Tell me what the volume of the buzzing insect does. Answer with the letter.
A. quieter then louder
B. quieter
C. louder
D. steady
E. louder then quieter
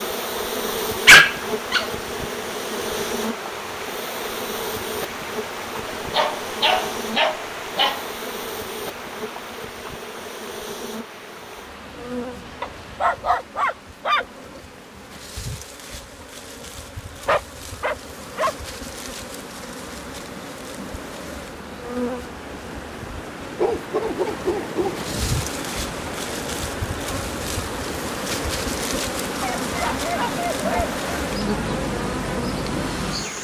A.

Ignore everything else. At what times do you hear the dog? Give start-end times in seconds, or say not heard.
1.1-1.9, 6.1-8.0, 12.6-14.6, 17.2-18.6, 23.6-25.4, 29.4-30.9.